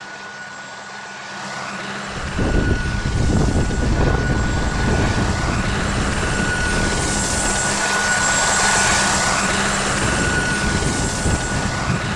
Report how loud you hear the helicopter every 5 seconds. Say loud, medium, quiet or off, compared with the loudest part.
medium, loud, loud.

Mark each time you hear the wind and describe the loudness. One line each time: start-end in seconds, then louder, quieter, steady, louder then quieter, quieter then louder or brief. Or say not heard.
2.1-12.1 quieter then louder.